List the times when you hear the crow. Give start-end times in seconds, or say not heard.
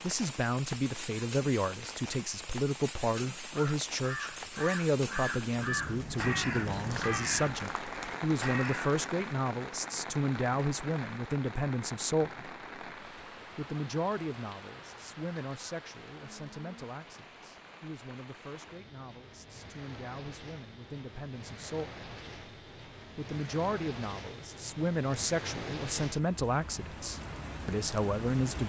3.1-8.9.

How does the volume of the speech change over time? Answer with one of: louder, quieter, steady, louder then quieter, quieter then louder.
quieter then louder.